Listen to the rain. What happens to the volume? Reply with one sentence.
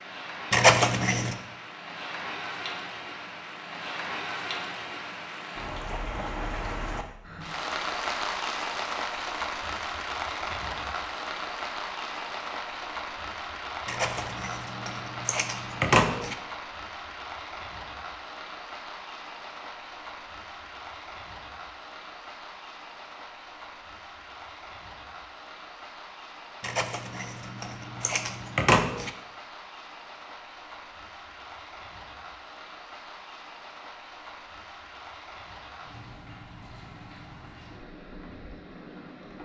The volume of the rain goes down.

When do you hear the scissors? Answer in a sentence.
The scissors can be heard from 0.5 to 1.4 s, from 13.8 to 16.4 s and from 26.6 to 29.1 s.